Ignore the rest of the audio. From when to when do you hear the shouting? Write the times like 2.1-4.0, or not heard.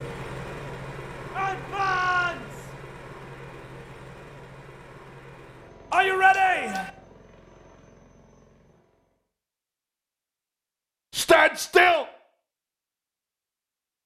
1.3-2.7, 5.9-6.9, 11.2-12.1.